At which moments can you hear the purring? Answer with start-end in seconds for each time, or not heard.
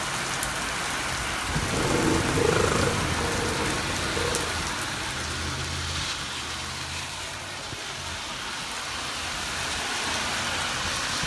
1.4-4.6.